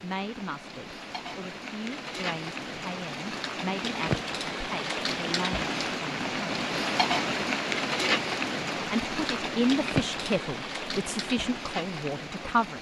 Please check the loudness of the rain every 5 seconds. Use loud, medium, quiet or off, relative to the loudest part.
medium, loud, medium.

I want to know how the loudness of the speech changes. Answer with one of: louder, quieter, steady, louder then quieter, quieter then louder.
louder.